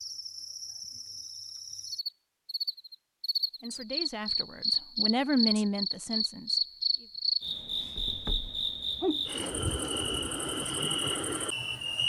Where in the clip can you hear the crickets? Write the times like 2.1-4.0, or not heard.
0.0-12.0.